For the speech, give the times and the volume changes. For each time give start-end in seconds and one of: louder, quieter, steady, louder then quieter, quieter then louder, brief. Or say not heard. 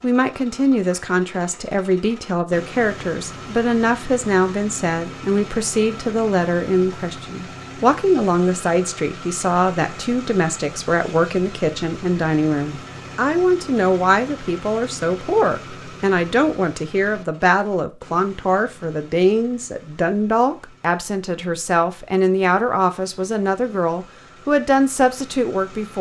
0.0-25.9 steady.